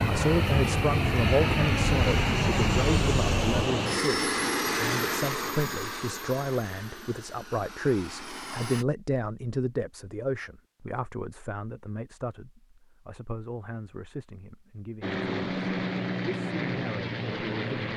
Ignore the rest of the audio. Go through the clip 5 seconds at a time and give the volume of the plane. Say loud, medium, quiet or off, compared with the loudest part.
loud, medium, off, loud.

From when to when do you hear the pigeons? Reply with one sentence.
The pigeons can't be heard in this clip.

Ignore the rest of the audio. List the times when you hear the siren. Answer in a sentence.
The siren can be heard from 0.0 to 3.5 s.